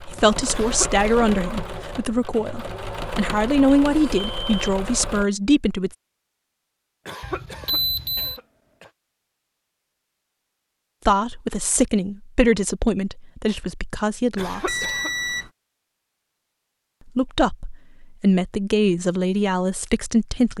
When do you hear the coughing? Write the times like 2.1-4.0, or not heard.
0.5-1.1, 7.0-8.9, 14.3-15.1.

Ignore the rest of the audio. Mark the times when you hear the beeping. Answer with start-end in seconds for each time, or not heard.
3.9-4.8, 7.2-8.4, 14.4-15.5.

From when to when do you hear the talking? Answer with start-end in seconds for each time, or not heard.
0.1-5.9, 11.1-14.9, 17.1-20.5.